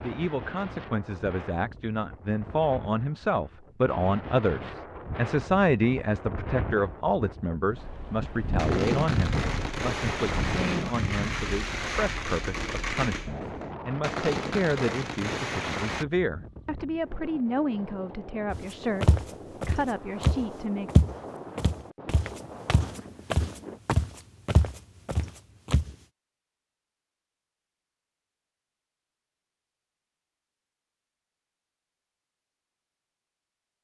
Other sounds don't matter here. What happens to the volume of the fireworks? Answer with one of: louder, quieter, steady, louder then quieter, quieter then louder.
steady.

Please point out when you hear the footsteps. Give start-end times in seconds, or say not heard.
18.5-25.9.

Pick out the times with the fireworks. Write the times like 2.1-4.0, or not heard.
8.6-16.1.